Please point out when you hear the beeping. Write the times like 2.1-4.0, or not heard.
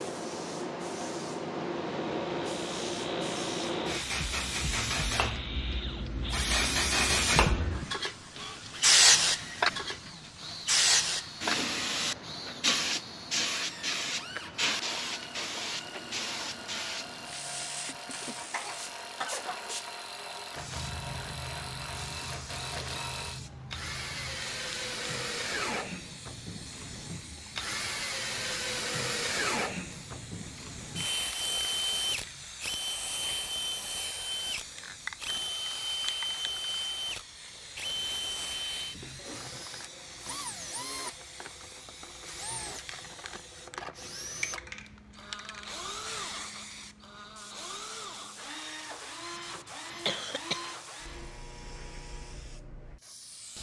not heard.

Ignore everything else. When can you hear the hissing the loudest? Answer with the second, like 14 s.
9 s.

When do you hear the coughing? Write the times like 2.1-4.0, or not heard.
17.9-19.8, 50.0-50.6.